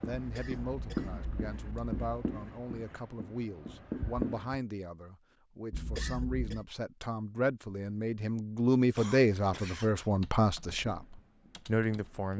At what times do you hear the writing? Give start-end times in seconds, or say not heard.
0.0-4.6, 10.7-12.3.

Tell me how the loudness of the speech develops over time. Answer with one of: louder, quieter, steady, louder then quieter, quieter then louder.
louder.